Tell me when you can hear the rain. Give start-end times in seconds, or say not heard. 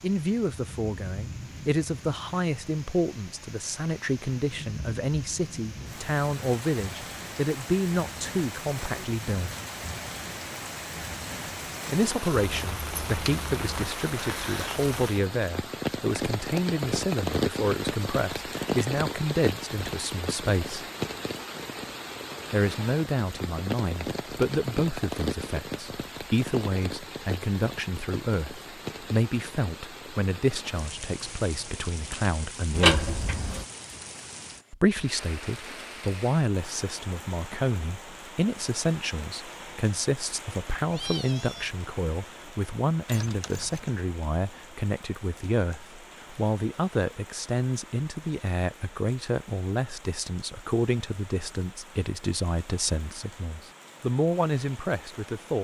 0.0-55.6.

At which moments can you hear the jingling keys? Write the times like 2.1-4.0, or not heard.
12.3-13.7, 32.7-33.6, 43.0-43.9.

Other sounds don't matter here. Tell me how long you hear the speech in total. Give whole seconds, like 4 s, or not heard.
50 s.